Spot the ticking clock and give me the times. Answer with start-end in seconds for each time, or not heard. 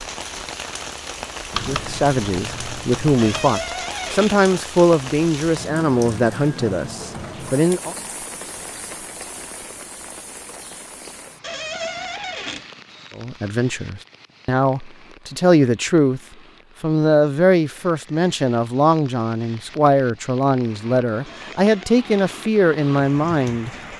not heard.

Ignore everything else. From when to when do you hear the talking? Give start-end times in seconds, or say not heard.
1.6-8.0, 13.2-16.2, 16.8-23.9.